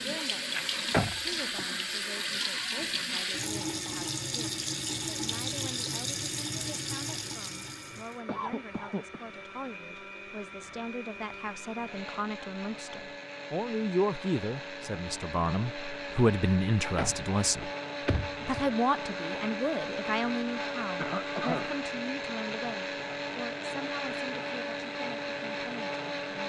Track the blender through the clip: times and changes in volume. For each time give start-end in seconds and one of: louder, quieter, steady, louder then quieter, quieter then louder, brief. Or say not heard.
0.0-26.4 louder.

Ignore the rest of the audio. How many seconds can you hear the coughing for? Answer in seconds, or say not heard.
2 s.